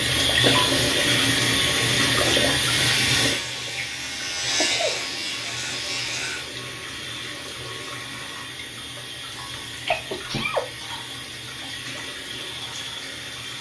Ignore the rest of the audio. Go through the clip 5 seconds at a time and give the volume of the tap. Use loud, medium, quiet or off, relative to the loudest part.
loud, quiet, quiet.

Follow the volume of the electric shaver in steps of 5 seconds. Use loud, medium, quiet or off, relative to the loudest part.
loud, loud, off.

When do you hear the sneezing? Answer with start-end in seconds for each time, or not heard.
4.5-5.0, 9.8-10.6.